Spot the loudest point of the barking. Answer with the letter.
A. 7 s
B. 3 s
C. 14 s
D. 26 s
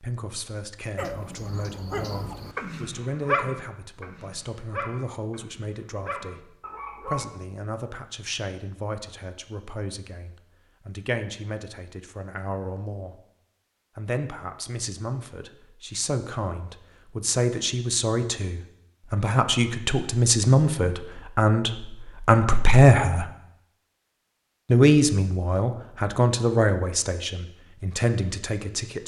B.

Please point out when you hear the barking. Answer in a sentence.
The barking can be heard from 0.9 to 7.2 s.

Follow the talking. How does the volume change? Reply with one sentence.
The volume of the talking goes up.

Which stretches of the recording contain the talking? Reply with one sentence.
You can hear the talking from 0.0 to 13.2 s, from 13.9 to 23.3 s and from 24.6 to 29.0 s.